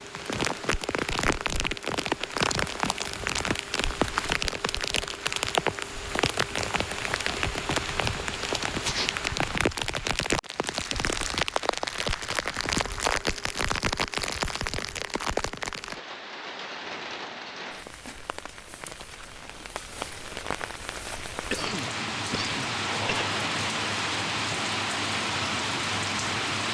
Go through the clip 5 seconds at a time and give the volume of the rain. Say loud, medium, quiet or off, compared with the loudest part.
loud, loud, loud, medium, loud, loud.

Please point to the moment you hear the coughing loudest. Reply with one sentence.
The volume of the coughing peaks at 22 seconds.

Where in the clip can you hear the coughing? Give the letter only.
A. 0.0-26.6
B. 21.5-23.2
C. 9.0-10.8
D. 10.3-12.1
B.